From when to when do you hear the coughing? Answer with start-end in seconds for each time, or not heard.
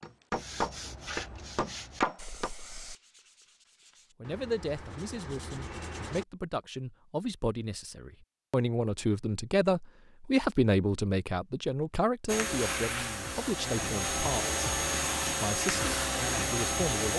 not heard.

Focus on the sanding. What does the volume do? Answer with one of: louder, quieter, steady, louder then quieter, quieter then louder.
quieter then louder.